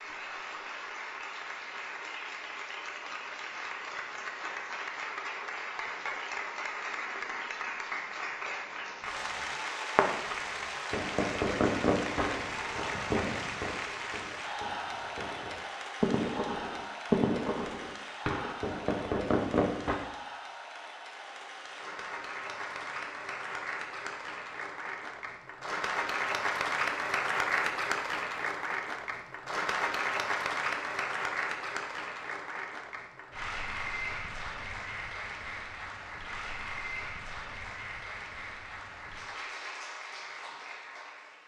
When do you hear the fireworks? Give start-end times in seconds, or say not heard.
9.1-20.0.